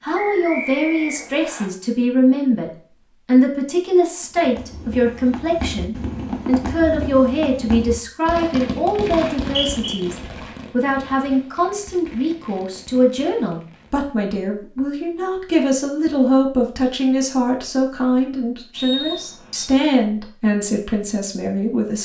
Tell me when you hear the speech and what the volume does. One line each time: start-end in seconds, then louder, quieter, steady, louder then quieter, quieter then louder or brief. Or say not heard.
0.0-21.9 steady.